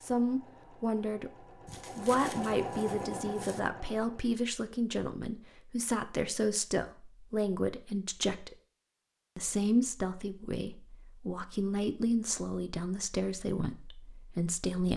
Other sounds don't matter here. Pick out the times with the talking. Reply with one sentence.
The talking can be heard from 0.0 to 1.3 s, from 1.9 to 8.6 s and from 9.3 to 14.9 s.